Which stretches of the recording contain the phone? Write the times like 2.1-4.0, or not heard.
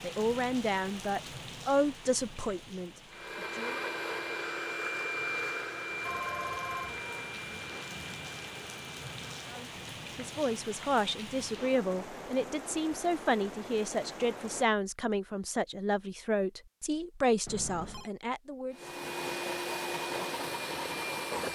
6.0-7.3, 17.4-18.1.